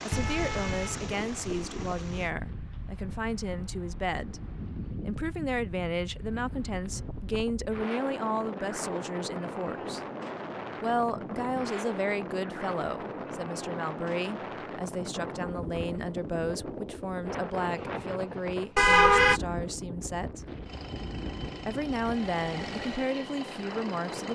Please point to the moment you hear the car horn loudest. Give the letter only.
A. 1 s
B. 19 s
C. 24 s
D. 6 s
B.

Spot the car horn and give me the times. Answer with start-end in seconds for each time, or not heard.
0.1-2.0, 18.8-19.4.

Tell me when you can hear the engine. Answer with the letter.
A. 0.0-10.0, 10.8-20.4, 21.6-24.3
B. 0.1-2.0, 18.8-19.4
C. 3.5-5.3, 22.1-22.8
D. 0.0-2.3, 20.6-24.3
D.